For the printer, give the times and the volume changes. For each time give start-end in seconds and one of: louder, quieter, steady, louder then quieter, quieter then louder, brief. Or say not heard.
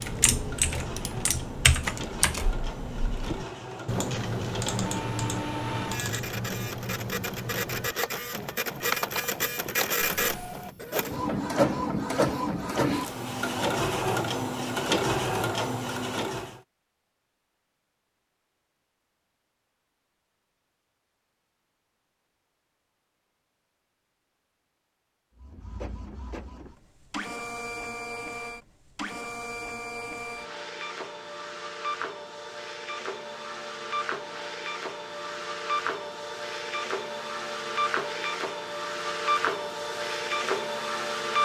0.0-16.6 louder
25.4-41.4 louder.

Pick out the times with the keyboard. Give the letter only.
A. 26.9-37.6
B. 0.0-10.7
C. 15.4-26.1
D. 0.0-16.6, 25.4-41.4
B.